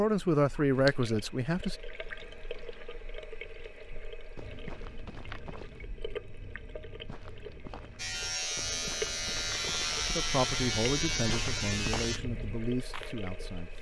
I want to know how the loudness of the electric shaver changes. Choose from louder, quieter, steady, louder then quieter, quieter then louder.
steady.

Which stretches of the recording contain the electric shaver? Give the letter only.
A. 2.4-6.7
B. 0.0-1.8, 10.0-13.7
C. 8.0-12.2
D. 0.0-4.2
C.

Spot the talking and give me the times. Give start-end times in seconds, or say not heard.
0.0-1.8, 10.0-13.7.